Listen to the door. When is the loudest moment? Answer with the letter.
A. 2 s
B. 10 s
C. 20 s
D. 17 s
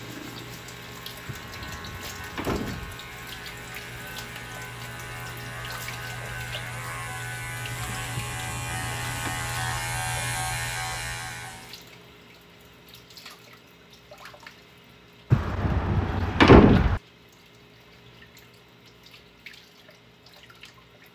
D.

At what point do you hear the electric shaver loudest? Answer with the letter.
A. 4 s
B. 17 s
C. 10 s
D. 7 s
C.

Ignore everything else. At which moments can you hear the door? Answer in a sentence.
You can hear the door from 1.4 to 3.0 s, from 8.2 to 9.3 s and from 15.3 to 17.0 s.